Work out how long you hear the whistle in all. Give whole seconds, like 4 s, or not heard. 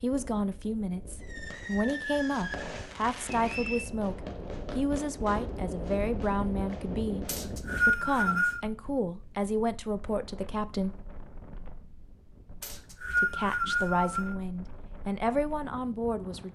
4 s.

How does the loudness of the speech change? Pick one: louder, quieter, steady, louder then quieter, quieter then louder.
steady.